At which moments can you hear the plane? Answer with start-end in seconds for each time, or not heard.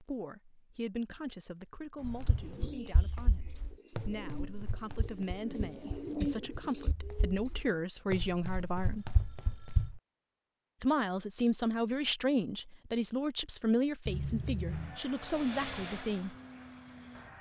14.7-17.3.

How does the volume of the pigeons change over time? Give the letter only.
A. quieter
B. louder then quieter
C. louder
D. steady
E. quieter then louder
B.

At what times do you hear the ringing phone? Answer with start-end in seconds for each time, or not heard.
1.9-2.8, 8.9-9.9, 14.1-15.0.